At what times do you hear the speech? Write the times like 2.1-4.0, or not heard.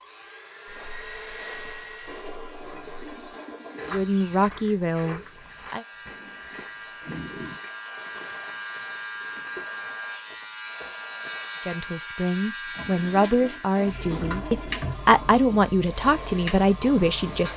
3.9-5.8, 11.7-17.5.